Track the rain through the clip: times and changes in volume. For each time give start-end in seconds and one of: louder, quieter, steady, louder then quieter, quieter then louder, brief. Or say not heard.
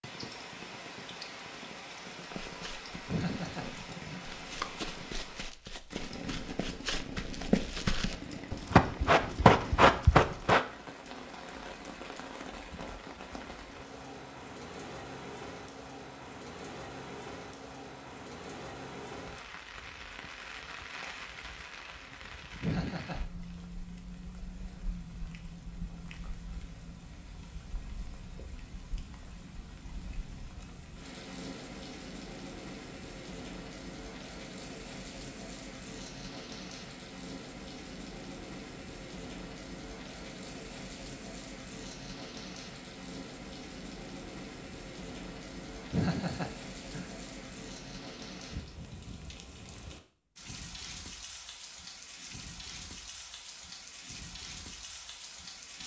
0.0-55.8 steady.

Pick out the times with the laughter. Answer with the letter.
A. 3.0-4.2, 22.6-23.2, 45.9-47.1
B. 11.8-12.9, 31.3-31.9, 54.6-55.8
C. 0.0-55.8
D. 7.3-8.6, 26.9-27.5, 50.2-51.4
A.